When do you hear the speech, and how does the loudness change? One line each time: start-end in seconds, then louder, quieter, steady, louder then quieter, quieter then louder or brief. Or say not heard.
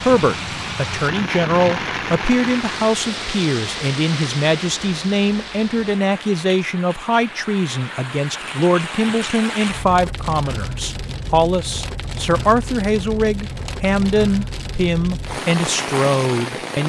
0.0-16.8 steady.